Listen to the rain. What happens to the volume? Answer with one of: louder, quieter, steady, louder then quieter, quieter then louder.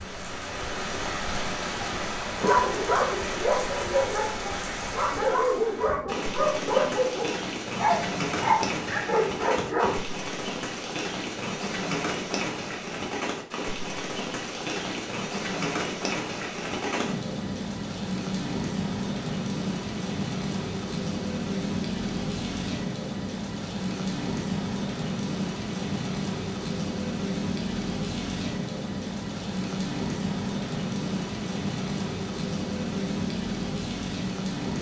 steady.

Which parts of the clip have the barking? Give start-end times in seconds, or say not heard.
2.4-10.0.